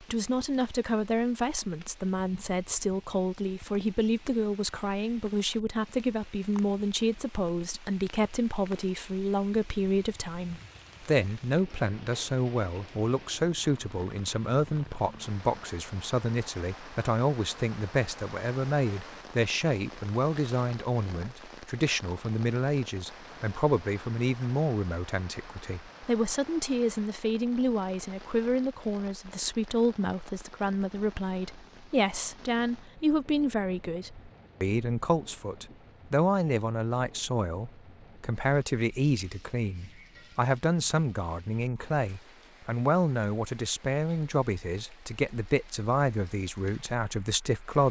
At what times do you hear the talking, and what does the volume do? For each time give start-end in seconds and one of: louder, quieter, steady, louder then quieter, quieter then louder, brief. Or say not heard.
0.0-47.8 steady.